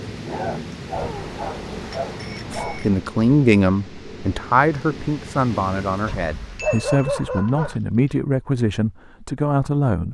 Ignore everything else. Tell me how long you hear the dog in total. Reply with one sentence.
The dog can be heard for 4 seconds in total.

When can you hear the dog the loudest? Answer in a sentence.
The volume of the dog peaks at 7 seconds.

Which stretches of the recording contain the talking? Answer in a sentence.
You can hear the talking from 2.5 to 10.0 s.